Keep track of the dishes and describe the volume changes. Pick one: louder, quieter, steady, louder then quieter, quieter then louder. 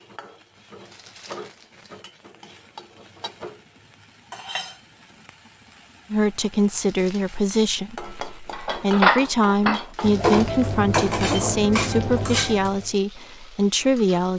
quieter.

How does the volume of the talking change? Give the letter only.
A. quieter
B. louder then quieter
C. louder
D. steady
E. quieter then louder
D.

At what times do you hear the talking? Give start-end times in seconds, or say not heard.
6.1-14.3.